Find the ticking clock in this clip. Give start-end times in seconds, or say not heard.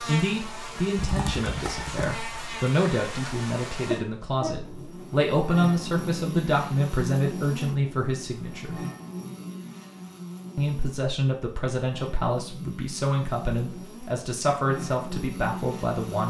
not heard.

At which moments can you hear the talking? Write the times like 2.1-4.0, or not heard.
0.1-8.8, 10.6-16.2.